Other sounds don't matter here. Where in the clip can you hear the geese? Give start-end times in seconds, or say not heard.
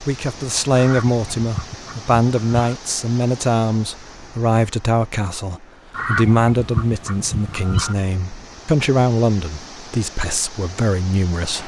0.8-2.8, 5.9-8.0.